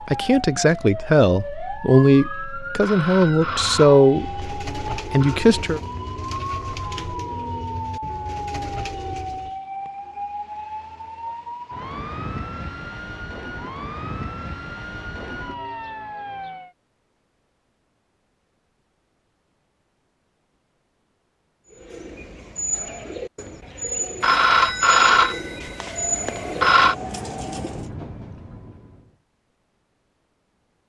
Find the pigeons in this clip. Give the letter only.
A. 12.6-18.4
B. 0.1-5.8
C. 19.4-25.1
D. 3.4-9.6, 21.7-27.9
D.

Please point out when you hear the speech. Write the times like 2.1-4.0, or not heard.
0.1-5.8.